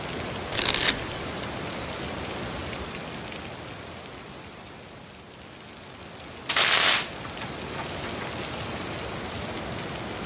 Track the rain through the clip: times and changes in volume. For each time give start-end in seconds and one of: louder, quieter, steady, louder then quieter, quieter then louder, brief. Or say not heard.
0.0-10.2 quieter then louder.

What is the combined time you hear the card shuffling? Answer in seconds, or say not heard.
2 s.